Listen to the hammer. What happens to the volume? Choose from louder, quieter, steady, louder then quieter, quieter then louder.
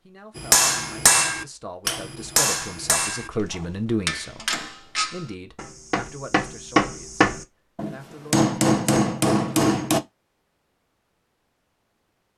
quieter then louder.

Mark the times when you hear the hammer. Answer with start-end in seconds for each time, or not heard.
0.3-10.0.